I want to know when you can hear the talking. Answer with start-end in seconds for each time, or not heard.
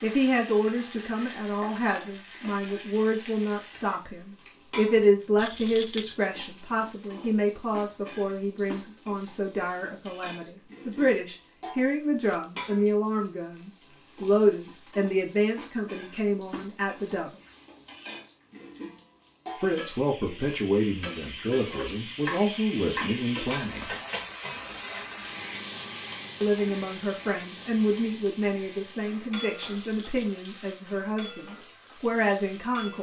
0.0-17.3, 19.6-23.9, 26.4-32.9.